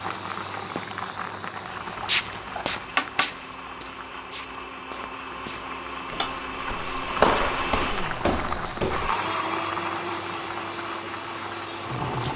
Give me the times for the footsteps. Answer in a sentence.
The footsteps can be heard from 1.9 to 9.2 s.